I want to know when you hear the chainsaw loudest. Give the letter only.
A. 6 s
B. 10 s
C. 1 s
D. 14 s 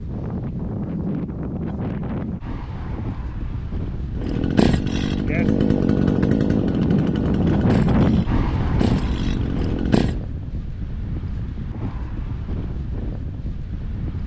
A.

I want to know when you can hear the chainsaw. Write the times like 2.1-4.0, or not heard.
4.2-10.2.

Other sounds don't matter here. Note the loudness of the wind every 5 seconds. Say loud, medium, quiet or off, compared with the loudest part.
medium, loud, medium.